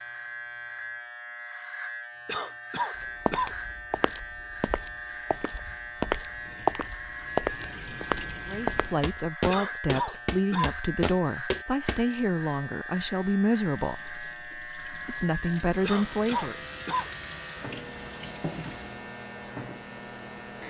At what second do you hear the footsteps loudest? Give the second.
7 s.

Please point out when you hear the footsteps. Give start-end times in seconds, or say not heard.
3.0-12.0.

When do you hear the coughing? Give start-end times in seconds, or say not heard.
2.2-3.5, 9.4-10.8, 15.8-17.1.